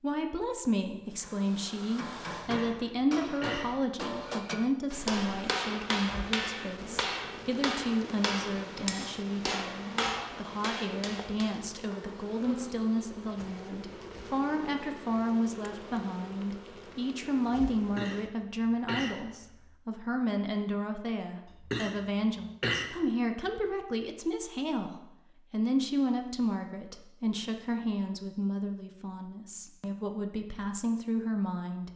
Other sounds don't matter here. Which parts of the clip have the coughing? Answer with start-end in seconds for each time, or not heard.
2.4-3.8, 17.8-19.6, 21.5-22.9.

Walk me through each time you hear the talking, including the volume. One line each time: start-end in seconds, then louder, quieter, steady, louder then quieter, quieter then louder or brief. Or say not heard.
0.0-31.9 steady.